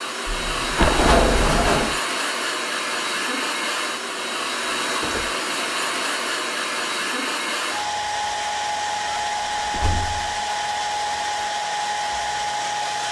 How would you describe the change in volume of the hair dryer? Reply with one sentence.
The volume of the hair dryer stays about the same.